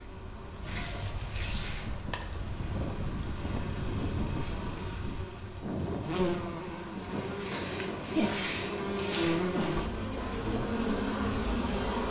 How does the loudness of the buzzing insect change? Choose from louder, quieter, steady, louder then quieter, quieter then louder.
louder.